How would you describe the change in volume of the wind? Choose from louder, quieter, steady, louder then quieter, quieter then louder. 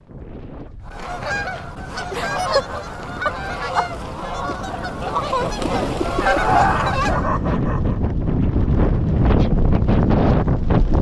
louder.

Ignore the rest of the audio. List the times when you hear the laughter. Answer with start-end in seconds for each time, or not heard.
2.1-3.9, 6.2-8.0.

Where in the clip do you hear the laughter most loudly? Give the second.
7 s.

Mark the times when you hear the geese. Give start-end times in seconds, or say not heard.
0.8-7.3.